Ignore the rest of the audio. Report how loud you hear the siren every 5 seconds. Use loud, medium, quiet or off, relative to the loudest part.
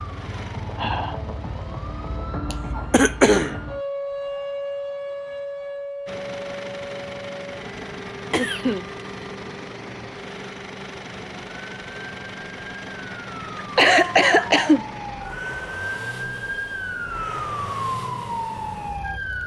loud, medium, medium, loud.